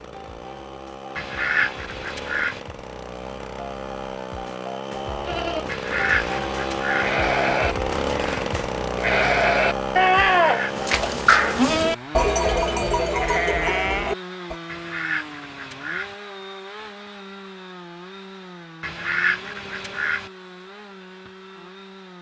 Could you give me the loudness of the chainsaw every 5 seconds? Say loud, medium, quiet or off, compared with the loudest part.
medium, loud, medium, quiet, quiet.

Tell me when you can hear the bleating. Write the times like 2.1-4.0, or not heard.
5.2-14.6.